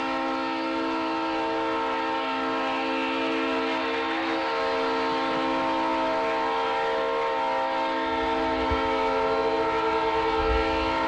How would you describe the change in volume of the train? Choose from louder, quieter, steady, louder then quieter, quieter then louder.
steady.